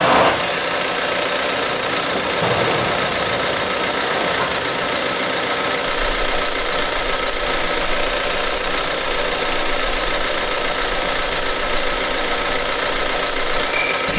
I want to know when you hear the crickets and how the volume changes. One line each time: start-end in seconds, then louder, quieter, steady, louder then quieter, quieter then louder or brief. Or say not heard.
0.0-14.1 steady.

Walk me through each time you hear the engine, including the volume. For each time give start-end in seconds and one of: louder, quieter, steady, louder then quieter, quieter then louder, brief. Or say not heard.
0.0-14.1 steady.